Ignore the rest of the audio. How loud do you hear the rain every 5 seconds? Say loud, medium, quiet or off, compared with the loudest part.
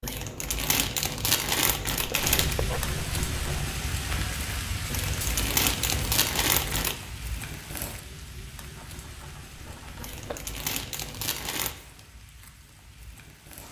loud, medium, quiet.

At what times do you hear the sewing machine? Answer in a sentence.
You can't hear the sewing machine here.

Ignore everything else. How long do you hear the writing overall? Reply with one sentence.
The writing can be heard for 3 seconds in total.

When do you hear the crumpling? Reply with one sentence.
The crumpling can be heard from 0.0 to 2.5 s, from 4.9 to 7.0 s and from 9.9 to 11.8 s.